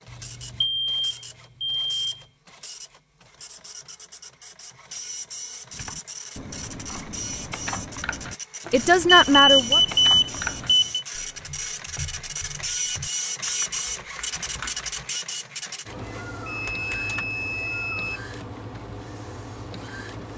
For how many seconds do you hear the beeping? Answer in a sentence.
The beeping can be heard for 6 seconds in total.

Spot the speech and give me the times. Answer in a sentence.
You can hear the speech from 8.7 to 9.8 s.